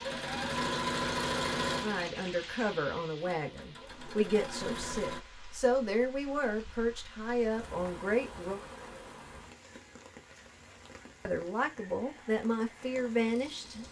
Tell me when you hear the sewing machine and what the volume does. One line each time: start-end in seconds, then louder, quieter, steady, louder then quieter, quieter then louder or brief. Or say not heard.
0.0-5.2 quieter then louder.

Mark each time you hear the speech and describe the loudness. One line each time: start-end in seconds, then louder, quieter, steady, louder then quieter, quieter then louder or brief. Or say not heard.
1.8-8.6 steady
11.2-13.8 brief.